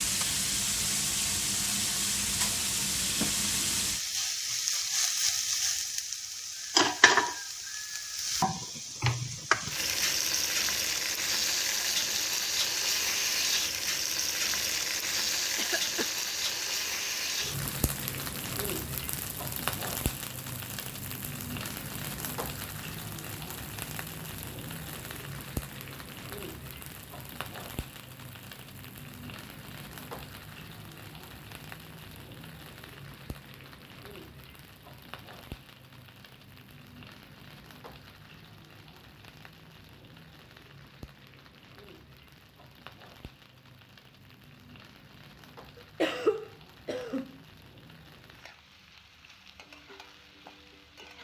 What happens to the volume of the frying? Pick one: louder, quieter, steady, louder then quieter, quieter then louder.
quieter.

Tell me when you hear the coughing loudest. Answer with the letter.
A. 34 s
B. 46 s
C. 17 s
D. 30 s
B.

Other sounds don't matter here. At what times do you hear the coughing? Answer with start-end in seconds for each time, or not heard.
15.6-16.1, 45.8-47.4.